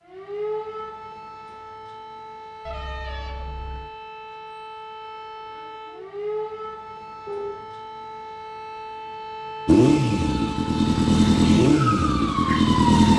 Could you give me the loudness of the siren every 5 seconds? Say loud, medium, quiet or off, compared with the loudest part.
medium, medium, loud.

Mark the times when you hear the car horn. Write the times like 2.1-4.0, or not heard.
2.6-3.9, 7.2-7.7.